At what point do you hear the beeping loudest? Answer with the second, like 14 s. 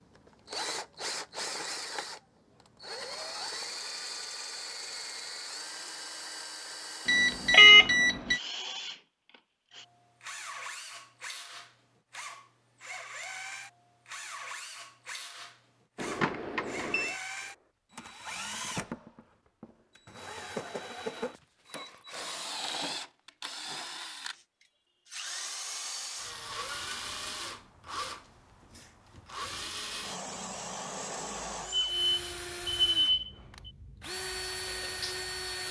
8 s.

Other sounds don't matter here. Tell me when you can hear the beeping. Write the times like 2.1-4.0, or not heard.
7.0-8.4, 15.9-17.1, 31.7-33.7.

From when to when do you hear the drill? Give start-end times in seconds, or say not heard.
0.1-35.6.